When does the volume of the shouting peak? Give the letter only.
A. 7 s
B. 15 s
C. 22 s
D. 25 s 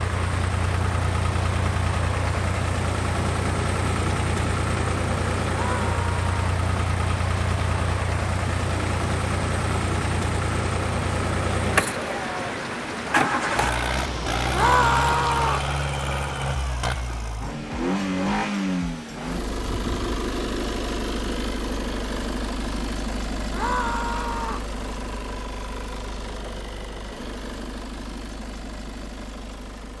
B.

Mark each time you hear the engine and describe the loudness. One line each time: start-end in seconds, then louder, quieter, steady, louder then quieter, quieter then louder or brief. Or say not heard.
0.0-29.9 quieter.